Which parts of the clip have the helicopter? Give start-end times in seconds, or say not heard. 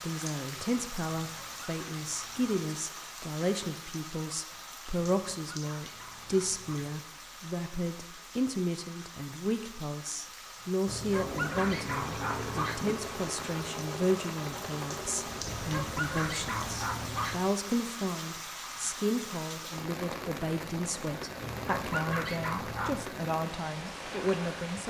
11.1-17.5.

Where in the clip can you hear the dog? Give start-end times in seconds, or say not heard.
1.2-2.6, 5.0-7.0, 10.8-12.8, 15.4-17.4, 21.4-23.1.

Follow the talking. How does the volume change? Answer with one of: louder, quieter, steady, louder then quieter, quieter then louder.
steady.